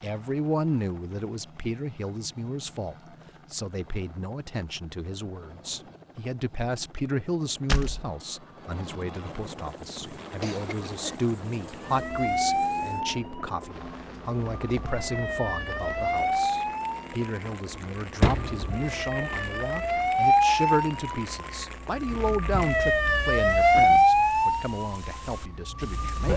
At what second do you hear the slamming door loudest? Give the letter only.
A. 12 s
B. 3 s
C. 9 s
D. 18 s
D.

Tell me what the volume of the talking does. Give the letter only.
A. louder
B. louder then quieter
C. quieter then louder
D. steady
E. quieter
D.